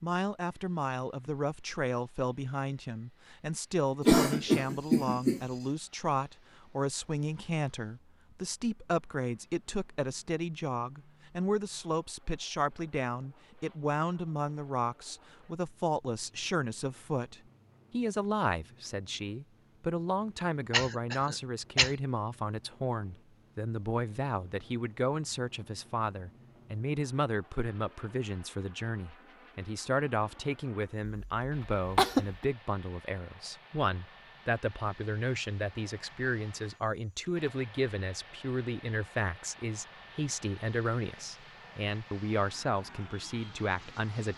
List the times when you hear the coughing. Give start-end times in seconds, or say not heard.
4.0-5.4, 20.7-21.9, 31.1-32.4.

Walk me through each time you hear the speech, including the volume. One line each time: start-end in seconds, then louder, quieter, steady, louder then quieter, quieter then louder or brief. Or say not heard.
0.0-44.3 steady.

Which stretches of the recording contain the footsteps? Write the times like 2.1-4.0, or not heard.
not heard.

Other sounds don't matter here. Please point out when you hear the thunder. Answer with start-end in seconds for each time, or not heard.
not heard.